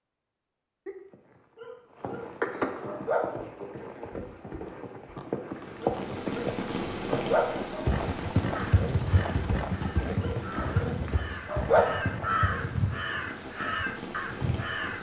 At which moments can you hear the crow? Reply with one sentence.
The crow can be heard from 8.5 to 14.9 s.